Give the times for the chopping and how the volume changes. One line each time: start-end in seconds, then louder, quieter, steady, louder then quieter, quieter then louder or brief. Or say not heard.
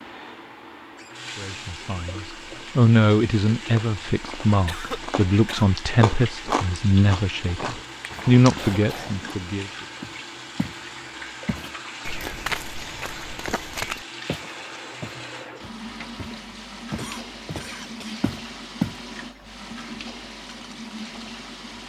not heard.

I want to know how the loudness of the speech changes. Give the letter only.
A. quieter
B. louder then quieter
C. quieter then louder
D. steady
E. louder
C.